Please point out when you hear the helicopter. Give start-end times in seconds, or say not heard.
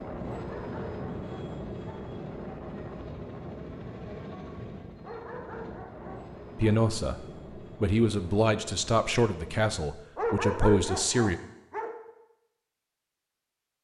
0.0-9.8.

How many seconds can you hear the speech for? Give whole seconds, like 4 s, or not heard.
5 s.